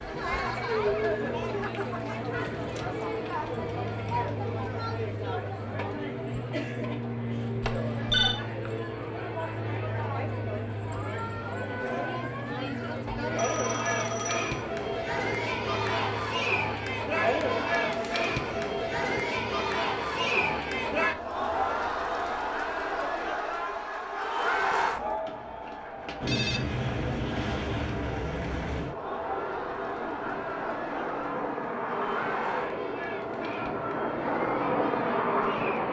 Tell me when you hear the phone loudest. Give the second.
8 s.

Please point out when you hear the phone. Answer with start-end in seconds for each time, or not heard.
7.6-8.4, 13.3-14.7, 25.2-26.6.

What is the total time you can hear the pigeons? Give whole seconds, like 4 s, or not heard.
not heard.